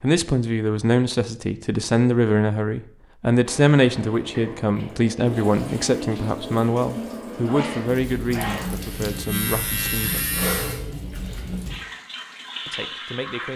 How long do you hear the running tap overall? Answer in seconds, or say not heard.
10 s.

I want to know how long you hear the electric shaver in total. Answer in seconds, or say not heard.
2 s.